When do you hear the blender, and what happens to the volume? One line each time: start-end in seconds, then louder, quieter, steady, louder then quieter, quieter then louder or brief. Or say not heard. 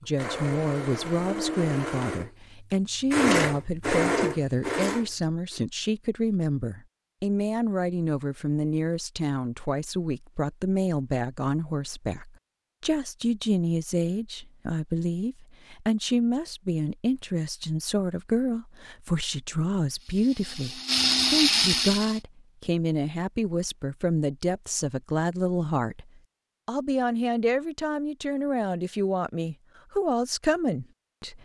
0.0-5.6 louder then quieter
20.0-22.2 brief.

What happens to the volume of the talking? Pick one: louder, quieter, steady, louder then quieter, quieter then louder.
steady.